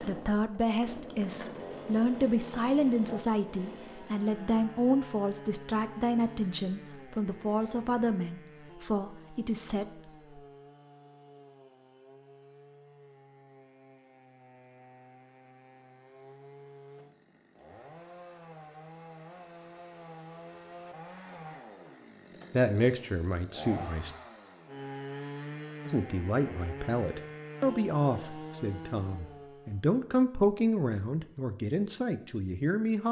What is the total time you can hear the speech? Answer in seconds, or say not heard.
19 s.